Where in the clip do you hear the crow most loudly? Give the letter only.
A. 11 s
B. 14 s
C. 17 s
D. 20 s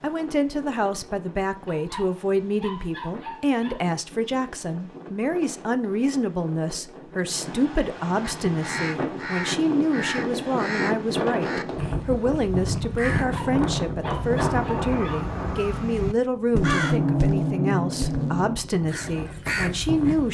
C.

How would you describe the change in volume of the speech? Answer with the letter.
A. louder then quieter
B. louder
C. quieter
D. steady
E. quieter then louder
D.